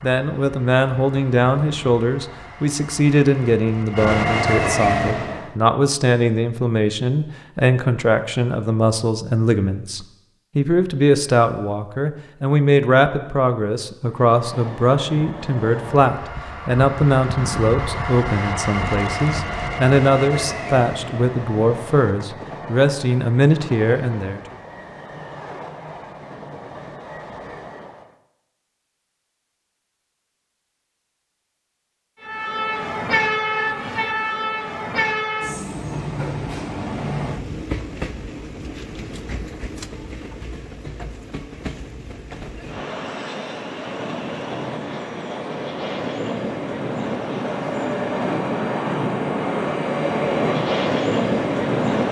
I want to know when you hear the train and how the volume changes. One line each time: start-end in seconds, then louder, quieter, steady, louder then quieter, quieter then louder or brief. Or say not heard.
0.0-5.5 louder
14.1-28.1 louder then quieter
32.2-52.0 quieter then louder.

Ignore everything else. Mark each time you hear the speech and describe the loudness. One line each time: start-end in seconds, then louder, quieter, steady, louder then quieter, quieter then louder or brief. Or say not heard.
0.0-24.6 steady.